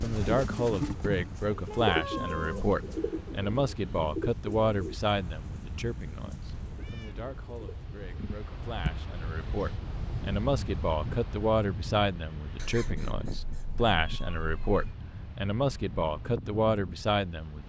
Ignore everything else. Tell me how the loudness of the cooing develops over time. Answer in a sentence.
The volume of the cooing goes down.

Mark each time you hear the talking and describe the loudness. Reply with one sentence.
The talking can be heard from 0.0 to 17.6 s, getting quieter then louder.